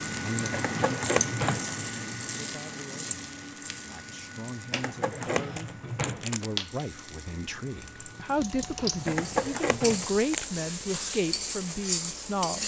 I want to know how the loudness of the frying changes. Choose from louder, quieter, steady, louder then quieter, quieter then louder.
quieter then louder.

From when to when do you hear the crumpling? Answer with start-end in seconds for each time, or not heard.
0.5-1.3, 4.7-6.5, 9.1-10.4.